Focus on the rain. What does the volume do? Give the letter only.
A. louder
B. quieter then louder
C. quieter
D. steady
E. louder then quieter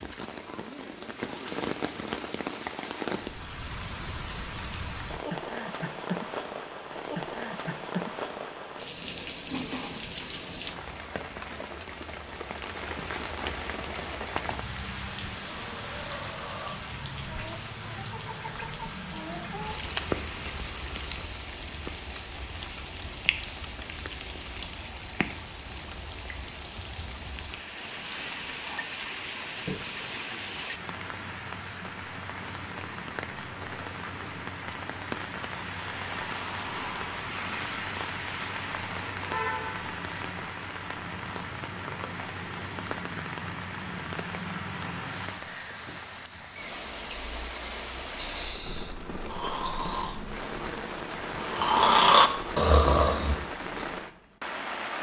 D.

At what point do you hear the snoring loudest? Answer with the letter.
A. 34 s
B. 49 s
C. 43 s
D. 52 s
D.